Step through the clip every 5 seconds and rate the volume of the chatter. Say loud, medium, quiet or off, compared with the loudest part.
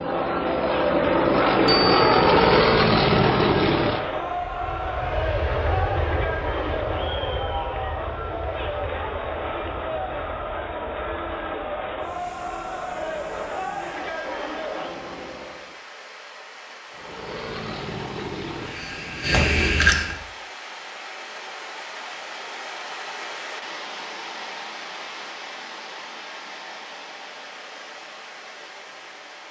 loud, loud, loud, off, off, off.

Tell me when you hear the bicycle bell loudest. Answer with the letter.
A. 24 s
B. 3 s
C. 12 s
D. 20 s
D.